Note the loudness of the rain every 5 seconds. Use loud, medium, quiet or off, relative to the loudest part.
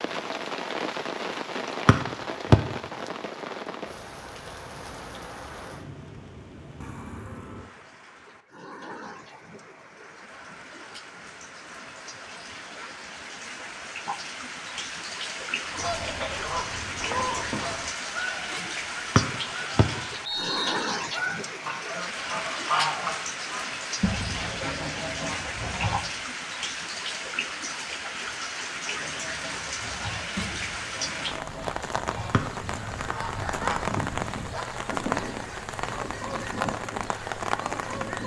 loud, medium, medium, loud, loud, loud, loud, loud.